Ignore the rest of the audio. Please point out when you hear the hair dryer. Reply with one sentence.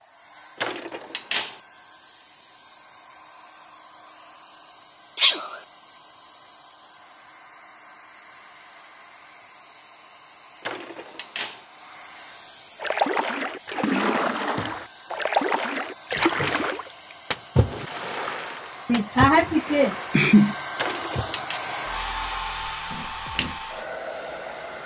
You can hear the hair dryer from 0.0 to 24.8 s.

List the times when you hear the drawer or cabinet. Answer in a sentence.
You can hear the drawer or cabinet from 0.6 to 1.6 s, from 10.6 to 11.7 s and from 20.8 to 21.6 s.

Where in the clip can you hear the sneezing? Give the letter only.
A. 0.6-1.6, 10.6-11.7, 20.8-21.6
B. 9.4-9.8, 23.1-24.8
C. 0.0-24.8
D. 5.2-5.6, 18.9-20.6
D.